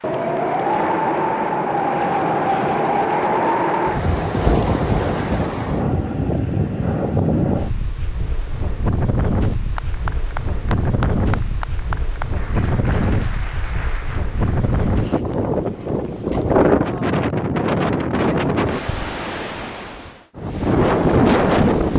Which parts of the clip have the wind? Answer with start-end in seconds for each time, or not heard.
0.0-21.9.